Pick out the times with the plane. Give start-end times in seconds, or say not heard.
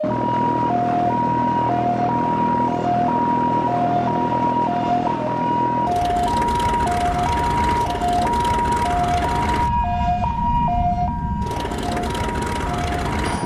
0.0-13.4.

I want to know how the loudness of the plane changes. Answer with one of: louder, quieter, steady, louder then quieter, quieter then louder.
steady.